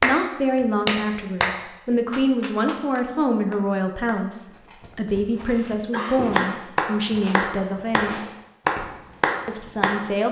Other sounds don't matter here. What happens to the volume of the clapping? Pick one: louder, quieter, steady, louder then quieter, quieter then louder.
quieter then louder.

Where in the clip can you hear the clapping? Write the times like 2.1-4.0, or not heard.
0.0-4.3, 6.3-10.1.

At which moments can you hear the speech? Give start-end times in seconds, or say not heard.
0.0-8.2, 9.4-10.2.